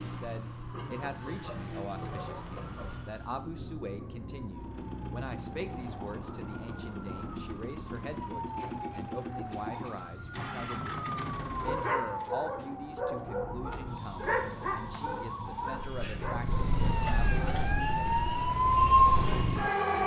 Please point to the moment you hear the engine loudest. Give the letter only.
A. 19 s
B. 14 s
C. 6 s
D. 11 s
D.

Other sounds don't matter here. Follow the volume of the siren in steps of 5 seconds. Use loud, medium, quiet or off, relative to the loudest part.
quiet, quiet, quiet, loud.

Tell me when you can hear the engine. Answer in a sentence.
The engine can be heard from 4.5 to 12.3 s.